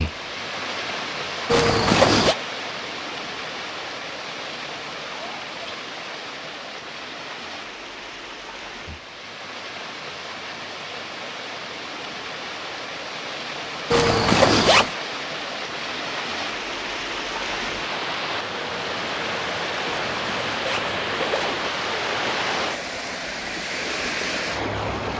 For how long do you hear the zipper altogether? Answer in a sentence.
The zipper can be heard for 4 seconds in total.